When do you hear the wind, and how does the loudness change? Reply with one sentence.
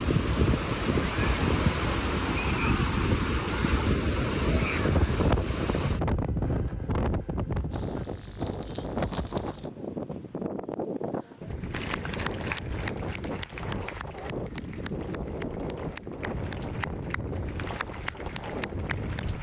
The wind can be heard from 0.0 to 19.3 s, getting quieter.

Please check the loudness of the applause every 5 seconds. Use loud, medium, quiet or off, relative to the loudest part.
off, off, loud, loud.